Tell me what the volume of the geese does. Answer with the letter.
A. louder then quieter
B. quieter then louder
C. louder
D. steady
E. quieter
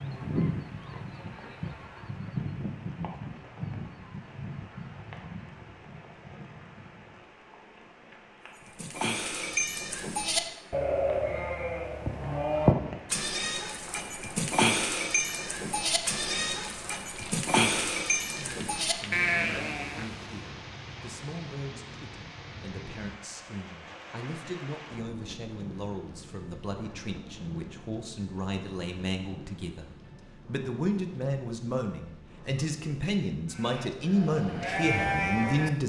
E.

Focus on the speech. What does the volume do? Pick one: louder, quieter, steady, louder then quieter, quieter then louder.
louder.